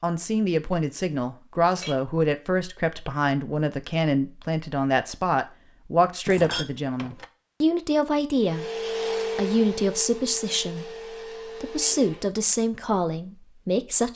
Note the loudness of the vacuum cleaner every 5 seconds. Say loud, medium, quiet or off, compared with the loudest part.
off, loud, medium.